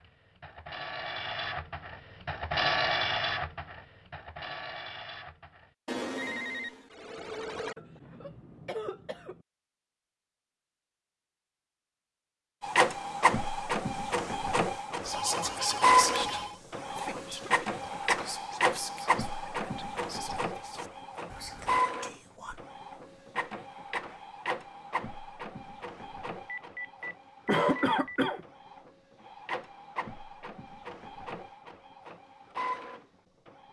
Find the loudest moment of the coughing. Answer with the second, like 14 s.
28 s.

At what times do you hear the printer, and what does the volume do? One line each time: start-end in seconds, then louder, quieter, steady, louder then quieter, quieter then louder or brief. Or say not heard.
0.0-5.7 louder then quieter
12.6-33.6 quieter.